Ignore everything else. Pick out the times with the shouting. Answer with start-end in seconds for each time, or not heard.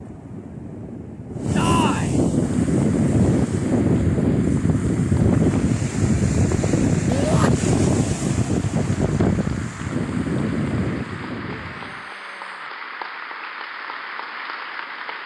1.6-2.1, 7.0-7.5, 11.4-12.7.